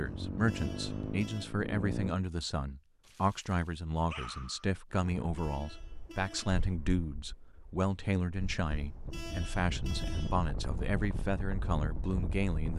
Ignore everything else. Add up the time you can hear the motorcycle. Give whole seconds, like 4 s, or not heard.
2 s.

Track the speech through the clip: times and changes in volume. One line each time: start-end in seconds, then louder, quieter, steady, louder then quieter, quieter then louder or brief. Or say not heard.
0.0-12.7 steady.